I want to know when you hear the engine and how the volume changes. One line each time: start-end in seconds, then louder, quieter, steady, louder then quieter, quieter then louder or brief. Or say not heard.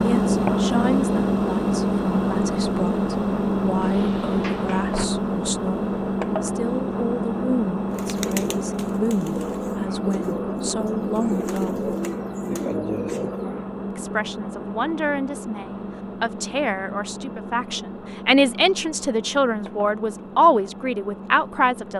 0.0-21.9 quieter.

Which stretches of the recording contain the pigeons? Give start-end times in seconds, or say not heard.
7.9-13.7.